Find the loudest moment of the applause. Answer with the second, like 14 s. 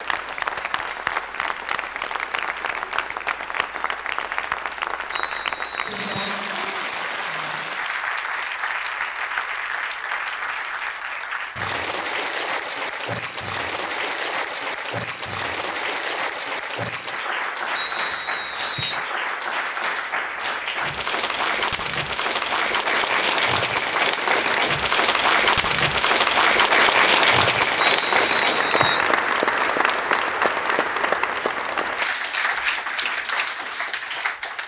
27 s.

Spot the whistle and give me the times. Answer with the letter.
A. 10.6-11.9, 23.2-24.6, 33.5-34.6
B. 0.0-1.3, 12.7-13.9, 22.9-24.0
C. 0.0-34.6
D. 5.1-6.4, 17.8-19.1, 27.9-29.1
D.